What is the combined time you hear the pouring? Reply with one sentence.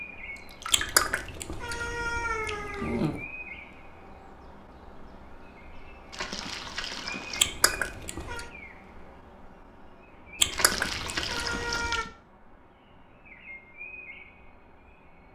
The pouring can be heard for 4 seconds in total.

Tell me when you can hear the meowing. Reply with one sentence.
The meowing can be heard from 0.7 to 3.2 s, from 7.3 to 8.4 s and from 10.4 to 12.1 s.